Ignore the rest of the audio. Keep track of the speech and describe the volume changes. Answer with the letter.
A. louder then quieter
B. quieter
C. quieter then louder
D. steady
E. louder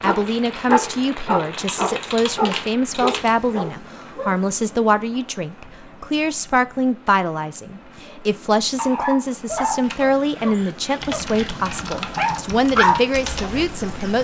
D.